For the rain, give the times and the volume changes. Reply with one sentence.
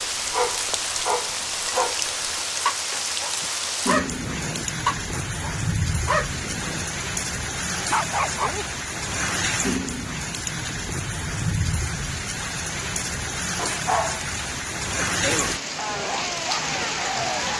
You can hear the rain from 0.0 to 17.5 s, at a steady volume.